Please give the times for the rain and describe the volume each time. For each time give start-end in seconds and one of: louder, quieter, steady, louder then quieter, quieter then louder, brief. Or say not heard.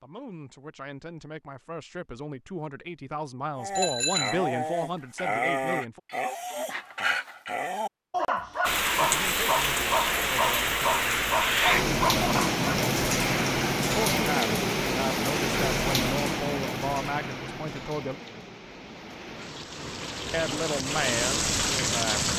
8.6-22.3 quieter then louder.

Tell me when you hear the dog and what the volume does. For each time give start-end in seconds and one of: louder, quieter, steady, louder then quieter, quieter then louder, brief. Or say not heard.
3.5-12.8 steady.